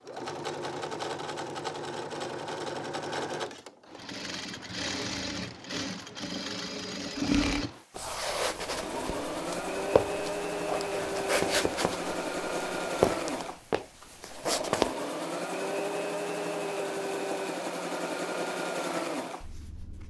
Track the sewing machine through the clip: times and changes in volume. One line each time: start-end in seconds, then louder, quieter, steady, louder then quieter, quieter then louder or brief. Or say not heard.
0.0-20.0 steady.